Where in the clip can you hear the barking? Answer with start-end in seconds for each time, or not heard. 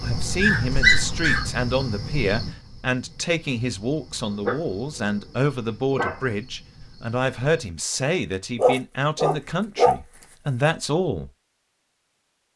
0.2-1.6, 4.3-6.2, 8.6-9.9.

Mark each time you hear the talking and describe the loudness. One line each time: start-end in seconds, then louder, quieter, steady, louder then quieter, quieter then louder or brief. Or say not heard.
0.0-11.3 steady.